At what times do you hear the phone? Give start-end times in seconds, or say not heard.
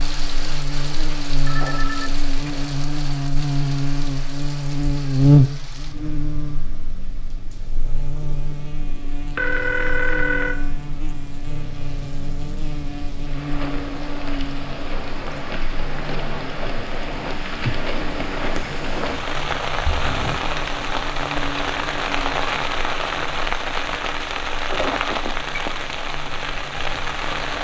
1.4-2.6, 9.3-10.6, 24.7-25.9.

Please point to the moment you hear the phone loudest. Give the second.
10 s.